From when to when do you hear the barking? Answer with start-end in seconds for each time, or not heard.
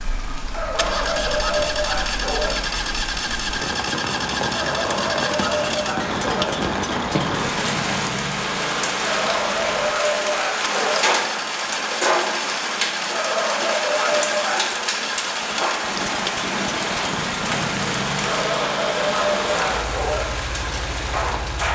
0.5-2.5, 4.5-6.5, 9.0-11.1, 13.1-14.8, 18.2-20.2.